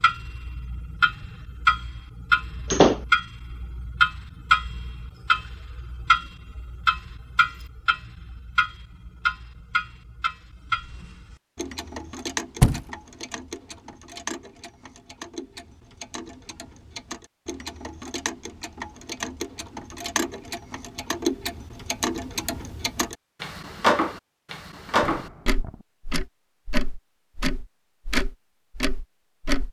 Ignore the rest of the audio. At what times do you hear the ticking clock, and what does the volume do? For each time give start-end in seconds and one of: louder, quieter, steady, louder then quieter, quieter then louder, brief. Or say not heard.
0.0-29.6 quieter then louder.